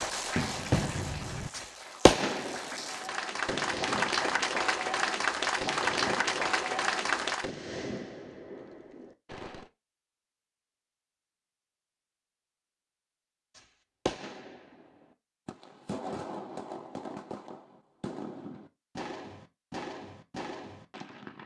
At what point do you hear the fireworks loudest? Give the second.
2 s.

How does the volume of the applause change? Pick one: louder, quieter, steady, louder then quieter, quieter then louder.
louder.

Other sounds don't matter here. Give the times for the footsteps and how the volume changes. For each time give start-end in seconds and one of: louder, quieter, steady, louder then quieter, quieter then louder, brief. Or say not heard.
not heard.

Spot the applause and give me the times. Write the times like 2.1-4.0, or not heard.
0.0-7.5.